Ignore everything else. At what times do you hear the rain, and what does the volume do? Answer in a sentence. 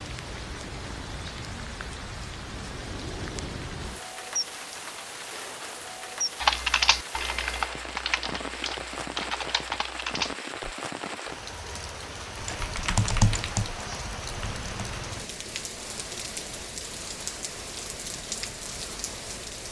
The rain can be heard from 0.0 to 19.6 s, at a steady volume.